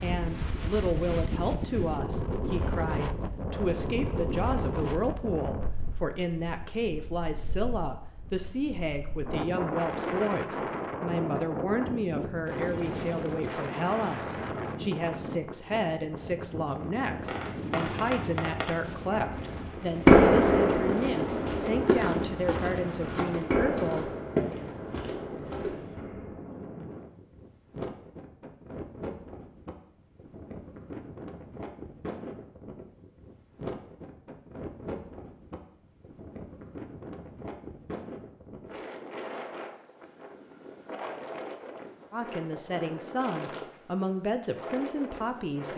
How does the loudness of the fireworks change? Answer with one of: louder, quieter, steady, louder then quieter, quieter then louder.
louder then quieter.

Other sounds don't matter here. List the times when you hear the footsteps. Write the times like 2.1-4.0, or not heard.
20.7-26.0.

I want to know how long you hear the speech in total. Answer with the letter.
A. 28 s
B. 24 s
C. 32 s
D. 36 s
A.